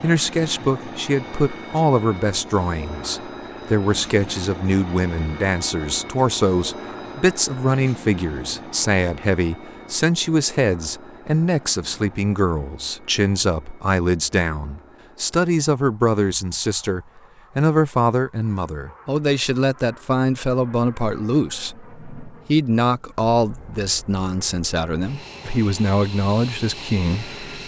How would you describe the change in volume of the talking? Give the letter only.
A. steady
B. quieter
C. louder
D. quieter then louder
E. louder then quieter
A.